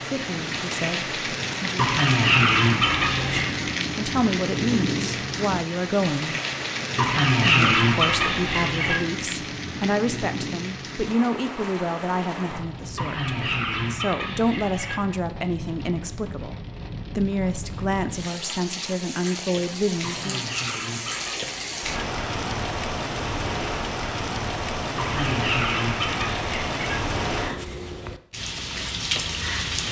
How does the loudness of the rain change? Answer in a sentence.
The volume of the rain goes down, then up.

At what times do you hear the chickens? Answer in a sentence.
The chickens can be heard from 1.8 to 3.5 s, from 7.0 to 9.0 s, from 12.9 to 15.0 s, from 20.0 to 21.9 s and from 24.9 to 27.0 s.